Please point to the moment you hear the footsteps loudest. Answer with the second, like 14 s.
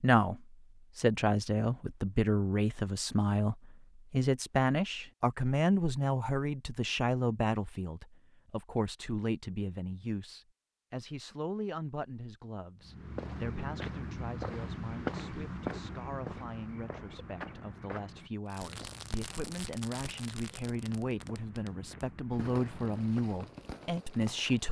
15 s.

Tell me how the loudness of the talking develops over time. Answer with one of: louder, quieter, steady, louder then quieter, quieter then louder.
quieter then louder.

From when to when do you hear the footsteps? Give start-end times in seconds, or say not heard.
12.8-23.4.